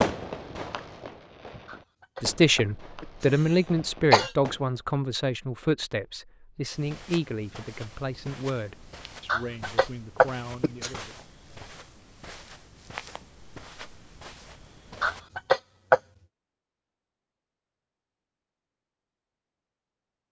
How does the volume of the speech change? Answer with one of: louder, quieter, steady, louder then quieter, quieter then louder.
quieter.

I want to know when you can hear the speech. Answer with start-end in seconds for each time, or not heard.
2.2-11.2.